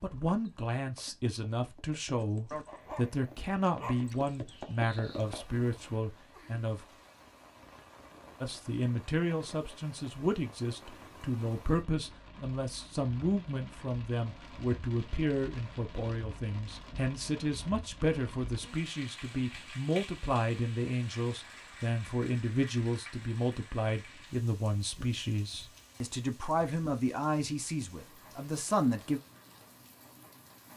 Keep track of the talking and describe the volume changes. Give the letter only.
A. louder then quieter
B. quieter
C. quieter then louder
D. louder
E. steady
E.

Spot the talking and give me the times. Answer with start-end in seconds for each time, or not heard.
0.0-6.8, 8.4-29.2.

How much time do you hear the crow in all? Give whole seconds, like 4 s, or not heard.
not heard.